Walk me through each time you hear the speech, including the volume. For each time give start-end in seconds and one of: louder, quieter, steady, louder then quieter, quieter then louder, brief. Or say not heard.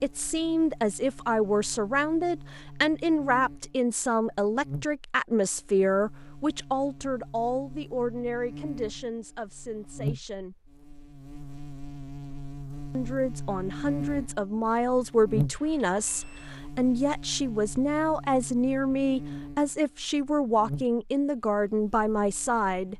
0.0-10.6 quieter
12.9-22.9 steady.